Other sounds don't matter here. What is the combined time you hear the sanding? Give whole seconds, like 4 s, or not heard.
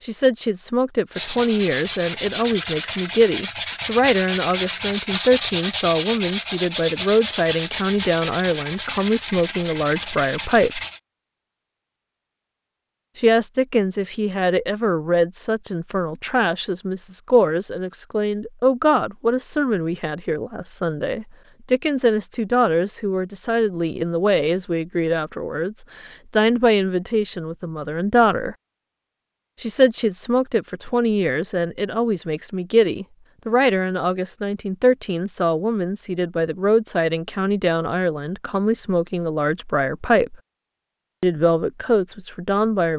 10 s.